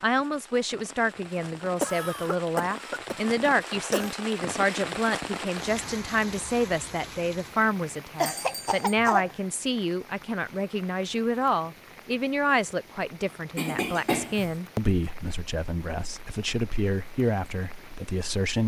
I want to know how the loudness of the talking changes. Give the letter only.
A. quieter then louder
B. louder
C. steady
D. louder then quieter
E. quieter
C.